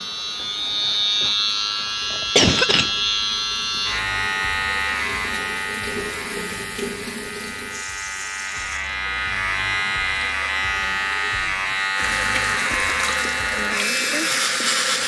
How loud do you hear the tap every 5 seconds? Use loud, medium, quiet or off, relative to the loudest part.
quiet, medium, loud.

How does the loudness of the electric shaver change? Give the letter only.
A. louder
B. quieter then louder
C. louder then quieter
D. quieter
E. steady
B.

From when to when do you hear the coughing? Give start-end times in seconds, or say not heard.
2.1-2.9.